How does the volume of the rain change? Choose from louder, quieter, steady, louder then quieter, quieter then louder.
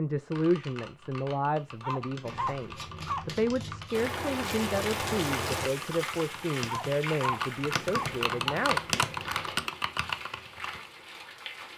quieter.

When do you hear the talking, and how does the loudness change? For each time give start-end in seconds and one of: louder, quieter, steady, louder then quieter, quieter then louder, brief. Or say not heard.
0.0-8.8 steady.